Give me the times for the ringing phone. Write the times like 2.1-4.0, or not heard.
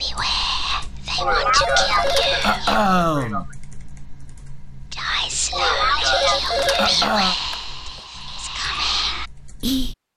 1.6-2.6, 6.1-8.0.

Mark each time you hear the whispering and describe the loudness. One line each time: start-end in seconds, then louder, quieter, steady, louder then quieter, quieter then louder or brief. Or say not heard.
0.0-2.8 brief
4.9-9.9 quieter then louder.